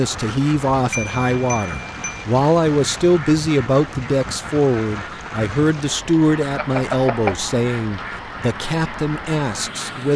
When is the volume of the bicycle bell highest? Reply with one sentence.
The loudest moment of the bicycle bell is at 7 seconds.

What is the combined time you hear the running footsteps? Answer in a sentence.
The running footsteps can't be heard in this clip.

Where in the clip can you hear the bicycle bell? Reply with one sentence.
You can hear the bicycle bell from 0.9 to 2.2 s and from 6.5 to 7.3 s.